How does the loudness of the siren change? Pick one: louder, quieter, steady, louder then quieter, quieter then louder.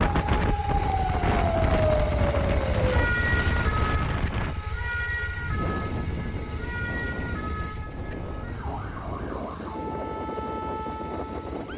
quieter.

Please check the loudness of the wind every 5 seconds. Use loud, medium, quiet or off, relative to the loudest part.
loud, medium, medium.